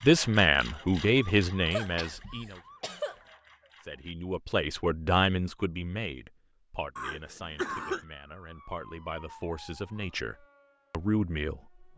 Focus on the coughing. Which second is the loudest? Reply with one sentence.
The volume of the coughing peaks at 8 seconds.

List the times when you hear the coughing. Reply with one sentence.
The coughing can be heard from 1.7 to 3.1 s and from 7.0 to 8.1 s.